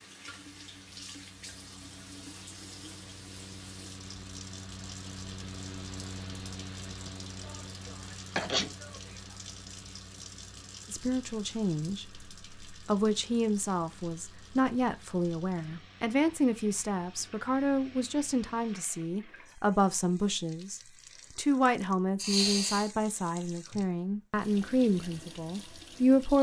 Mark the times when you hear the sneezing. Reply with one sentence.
You can hear the sneezing from 7.4 to 9.1 s and from 22.1 to 22.9 s.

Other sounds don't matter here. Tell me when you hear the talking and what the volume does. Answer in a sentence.
You can hear the talking from 10.9 to 26.3 s, at a steady volume.